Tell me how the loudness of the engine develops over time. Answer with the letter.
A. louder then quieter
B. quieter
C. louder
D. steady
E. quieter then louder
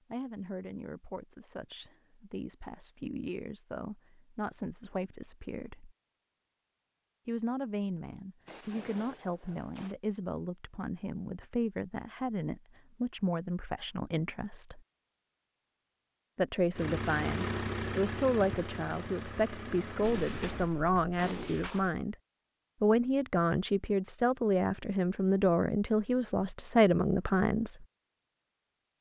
B.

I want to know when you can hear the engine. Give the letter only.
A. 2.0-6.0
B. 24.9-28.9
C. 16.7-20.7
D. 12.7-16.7
C.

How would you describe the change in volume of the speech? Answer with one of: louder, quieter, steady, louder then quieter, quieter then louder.
louder.